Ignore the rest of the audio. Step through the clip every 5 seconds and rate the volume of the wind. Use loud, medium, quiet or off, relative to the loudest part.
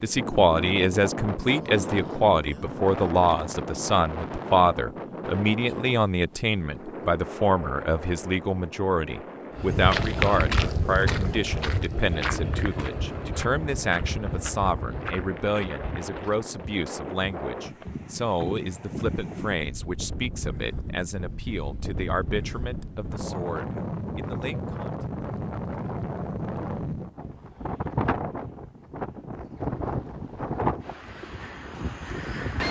loud, medium, medium, medium, loud, loud, loud.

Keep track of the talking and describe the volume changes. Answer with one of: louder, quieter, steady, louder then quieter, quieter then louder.
quieter.